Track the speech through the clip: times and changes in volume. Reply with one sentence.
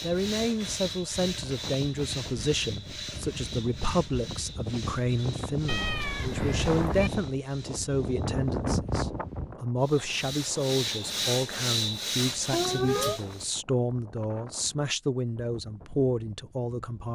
The speech can be heard from 0.0 to 17.1 s, at a steady volume.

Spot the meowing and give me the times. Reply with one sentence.
You can hear the meowing from 5.7 to 7.1 s and from 12.5 to 13.2 s.